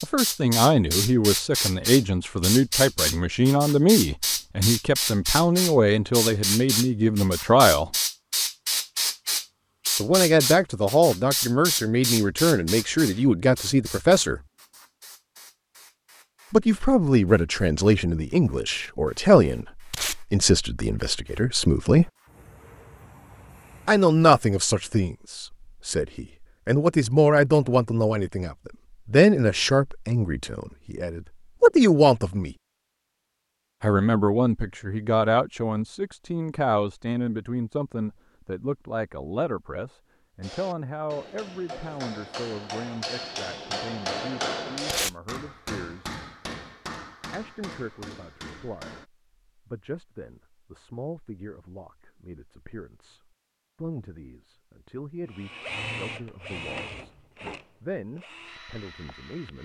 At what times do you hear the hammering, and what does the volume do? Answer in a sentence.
You can hear the hammering from 40.4 to 49.0 s, getting louder then quieter.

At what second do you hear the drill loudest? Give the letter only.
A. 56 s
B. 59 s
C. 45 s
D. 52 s
A.